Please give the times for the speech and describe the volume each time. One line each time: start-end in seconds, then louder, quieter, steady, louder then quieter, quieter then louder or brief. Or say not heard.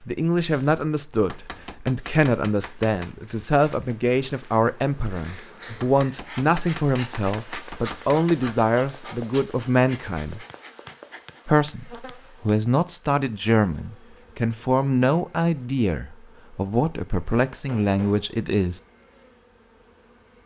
0.1-10.4 steady
11.4-18.8 steady.